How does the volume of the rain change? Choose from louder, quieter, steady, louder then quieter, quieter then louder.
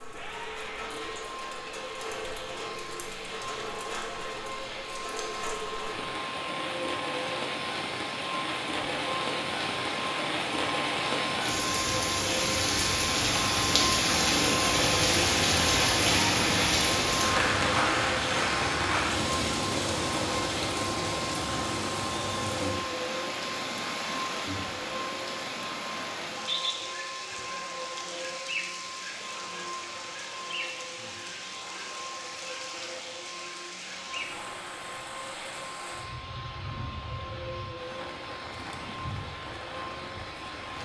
louder then quieter.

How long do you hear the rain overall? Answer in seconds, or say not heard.
41 s.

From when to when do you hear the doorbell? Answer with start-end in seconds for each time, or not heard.
not heard.